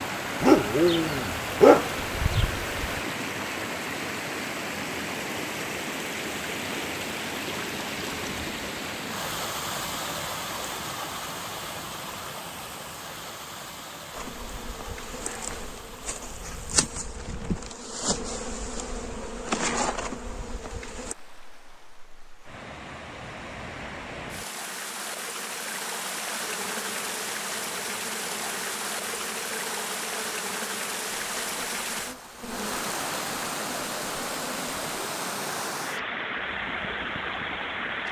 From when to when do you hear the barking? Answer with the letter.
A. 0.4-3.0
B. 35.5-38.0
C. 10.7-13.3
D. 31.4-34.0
A.